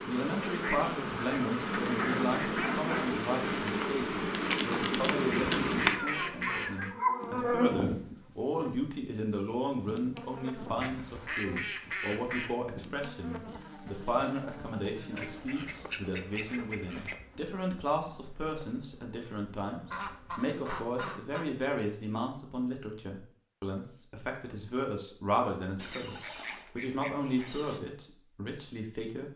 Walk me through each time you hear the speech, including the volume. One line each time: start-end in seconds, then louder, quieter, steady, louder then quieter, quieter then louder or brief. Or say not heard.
0.0-29.3 steady.